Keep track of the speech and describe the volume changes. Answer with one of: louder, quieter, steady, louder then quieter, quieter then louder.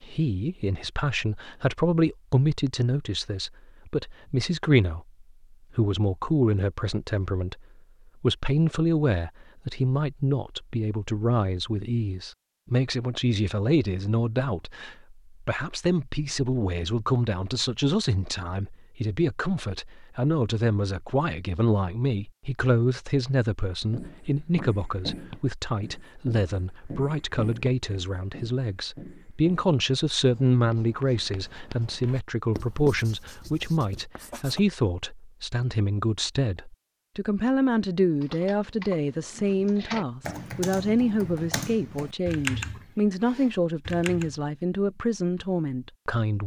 steady.